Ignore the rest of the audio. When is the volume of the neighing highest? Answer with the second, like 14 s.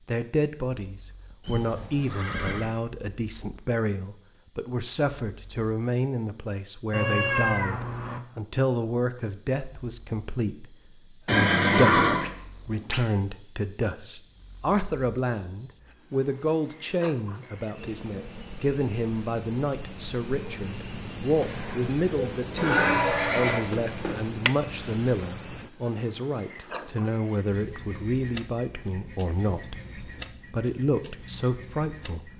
12 s.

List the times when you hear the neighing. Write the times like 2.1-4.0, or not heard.
1.4-2.7, 11.2-12.3, 22.6-24.2.